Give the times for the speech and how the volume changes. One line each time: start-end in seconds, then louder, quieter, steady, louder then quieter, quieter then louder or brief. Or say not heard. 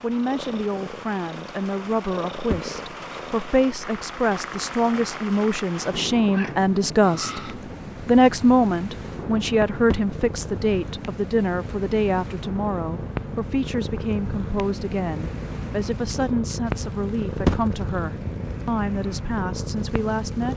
0.0-7.4 louder
8.1-20.5 quieter.